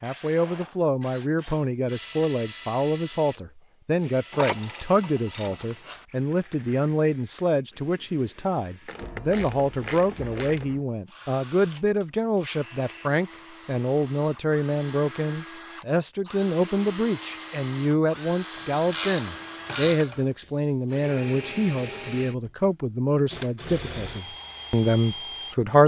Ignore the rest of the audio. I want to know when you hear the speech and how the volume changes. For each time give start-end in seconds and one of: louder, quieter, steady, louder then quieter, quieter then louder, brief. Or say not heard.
0.0-25.8 steady.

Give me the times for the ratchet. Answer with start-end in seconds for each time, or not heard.
4.3-6.0, 8.8-10.8, 18.6-20.2.